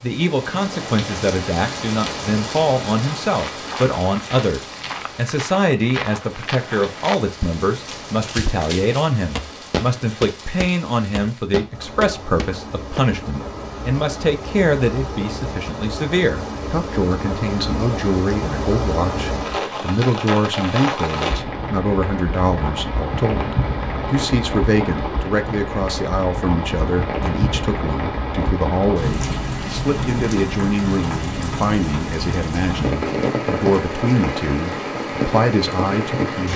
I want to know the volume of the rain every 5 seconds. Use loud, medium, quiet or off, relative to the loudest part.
medium, quiet, medium, loud, loud, loud, loud, loud.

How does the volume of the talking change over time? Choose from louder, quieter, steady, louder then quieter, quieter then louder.
steady.